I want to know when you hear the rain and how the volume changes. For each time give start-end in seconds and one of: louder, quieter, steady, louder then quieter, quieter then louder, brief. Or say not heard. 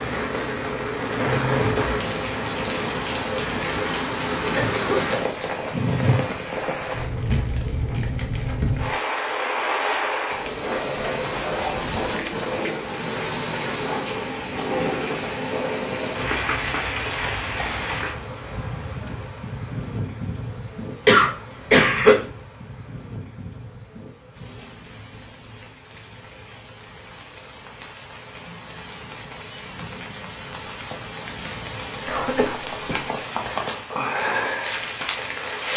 0.0-35.7 quieter then louder.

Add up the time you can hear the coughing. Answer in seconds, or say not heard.
3 s.